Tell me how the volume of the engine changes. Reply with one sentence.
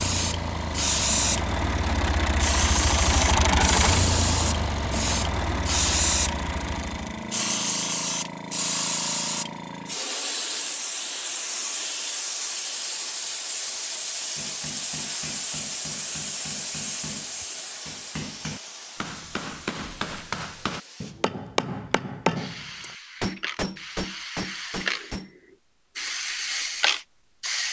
The loudness of the engine goes up, then down.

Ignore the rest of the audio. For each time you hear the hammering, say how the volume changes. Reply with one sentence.
The hammering can be heard from 14.3 to 25.4 s, getting louder.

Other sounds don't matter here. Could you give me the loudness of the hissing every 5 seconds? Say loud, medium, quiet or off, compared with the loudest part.
loud, loud, loud, medium, medium, loud.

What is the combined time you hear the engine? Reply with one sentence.
You can hear the engine for 7 seconds altogether.